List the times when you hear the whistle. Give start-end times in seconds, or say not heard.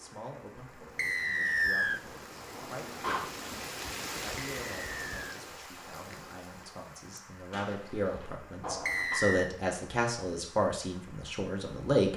0.9-2.0, 4.5-5.4, 8.8-9.5.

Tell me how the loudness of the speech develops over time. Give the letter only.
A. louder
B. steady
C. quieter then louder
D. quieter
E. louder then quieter
A.